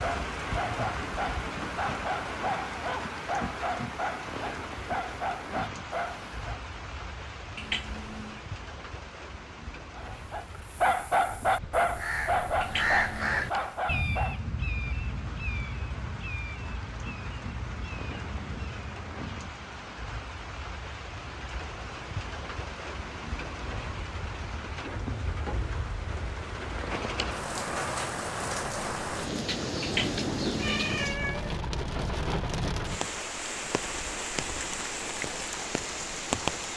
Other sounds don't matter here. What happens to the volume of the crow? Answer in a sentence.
The loudness of the crow goes down.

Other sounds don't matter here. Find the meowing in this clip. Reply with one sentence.
The meowing can be heard from 7.5 to 8.4 s, from 12.6 to 13.3 s and from 29.8 to 31.6 s.